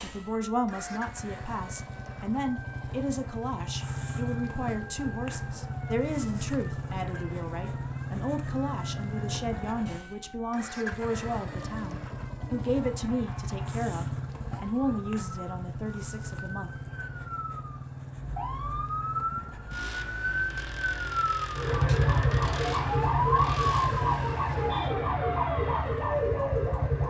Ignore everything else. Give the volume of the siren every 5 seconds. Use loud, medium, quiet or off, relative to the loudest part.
quiet, quiet, quiet, medium, loud, loud.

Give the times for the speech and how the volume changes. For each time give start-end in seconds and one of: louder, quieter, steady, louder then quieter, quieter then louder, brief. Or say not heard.
0.0-16.7 steady.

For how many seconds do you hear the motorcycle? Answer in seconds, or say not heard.
27 s.